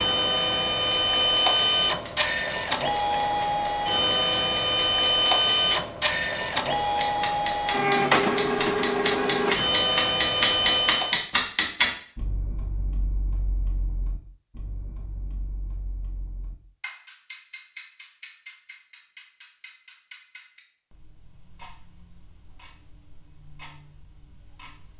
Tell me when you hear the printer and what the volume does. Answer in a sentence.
You can hear the printer from 0.0 to 11.3 s, at a steady volume.